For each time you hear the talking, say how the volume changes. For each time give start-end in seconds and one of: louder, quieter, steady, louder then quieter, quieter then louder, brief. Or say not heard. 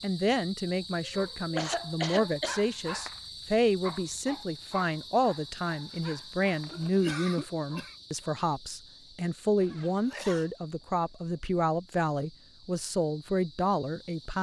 0.0-14.3 steady.